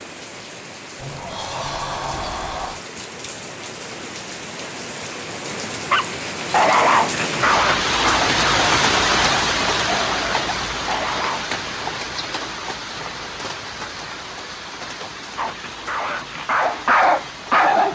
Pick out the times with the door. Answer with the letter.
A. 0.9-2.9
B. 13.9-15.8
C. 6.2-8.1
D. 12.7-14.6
A.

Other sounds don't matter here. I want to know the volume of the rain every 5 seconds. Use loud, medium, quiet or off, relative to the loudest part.
quiet, loud, medium, quiet.